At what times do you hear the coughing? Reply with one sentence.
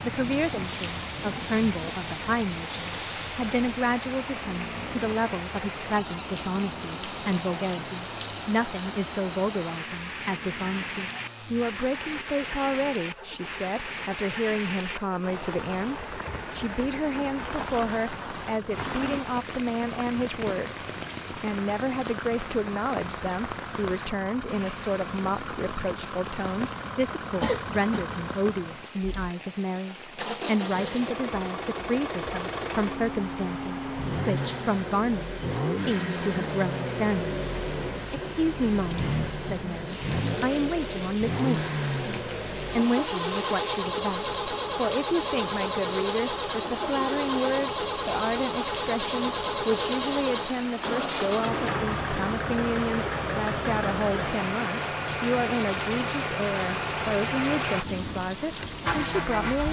The coughing can be heard from 27.4 to 28.1 s.